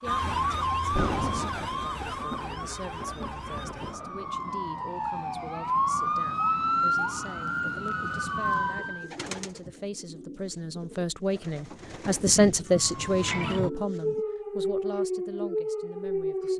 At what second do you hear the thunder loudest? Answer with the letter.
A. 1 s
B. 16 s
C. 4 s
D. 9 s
A.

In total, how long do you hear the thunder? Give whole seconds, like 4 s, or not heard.
4 s.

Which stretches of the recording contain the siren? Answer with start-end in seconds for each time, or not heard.
0.0-9.1, 12.7-16.5.